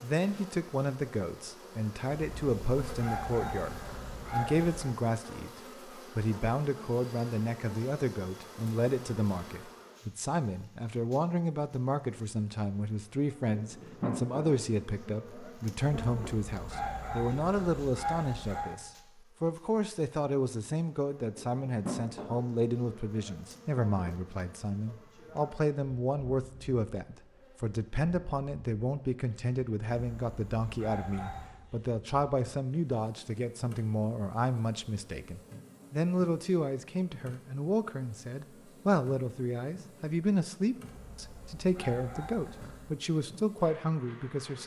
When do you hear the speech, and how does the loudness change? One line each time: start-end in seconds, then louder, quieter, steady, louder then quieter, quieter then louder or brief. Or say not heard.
0.0-44.6 steady.